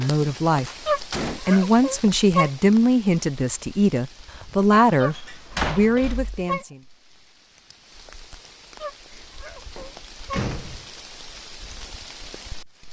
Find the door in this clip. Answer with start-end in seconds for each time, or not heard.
0.2-1.4, 4.9-6.5, 9.1-10.8.